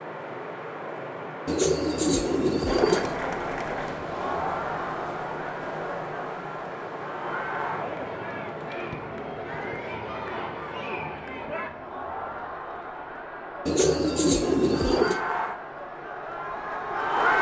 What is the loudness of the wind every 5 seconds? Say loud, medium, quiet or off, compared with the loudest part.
loud, loud, medium, medium.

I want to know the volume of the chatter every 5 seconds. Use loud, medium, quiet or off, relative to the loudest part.
loud, medium, medium, loud.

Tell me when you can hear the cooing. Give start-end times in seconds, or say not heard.
1.4-3.2, 13.7-15.2.